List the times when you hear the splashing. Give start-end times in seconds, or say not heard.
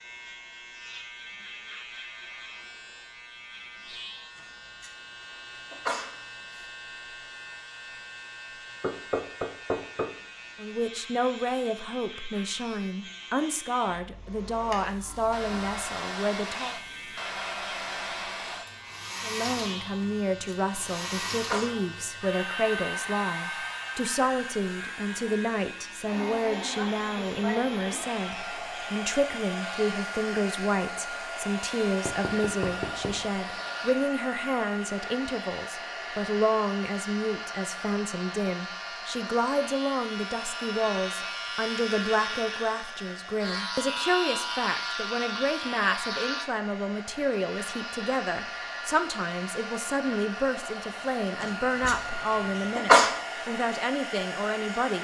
not heard.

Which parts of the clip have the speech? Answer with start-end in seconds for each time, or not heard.
10.6-16.8, 19.2-54.9.